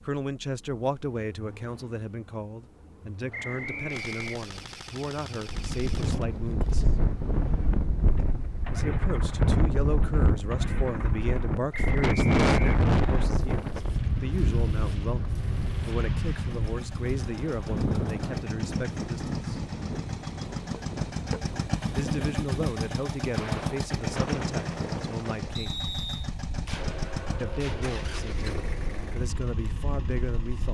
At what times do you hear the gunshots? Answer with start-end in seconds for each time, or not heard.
3.8-7.2, 26.6-28.4.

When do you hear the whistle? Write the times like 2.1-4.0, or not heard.
3.3-4.5, 11.7-13.2, 25.6-26.3.